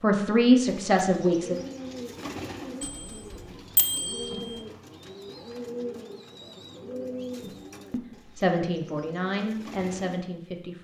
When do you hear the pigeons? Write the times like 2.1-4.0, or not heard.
0.6-10.2.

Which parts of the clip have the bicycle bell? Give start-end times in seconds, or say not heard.
2.8-4.5.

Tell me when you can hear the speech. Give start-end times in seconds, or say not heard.
0.0-1.6, 7.4-10.8.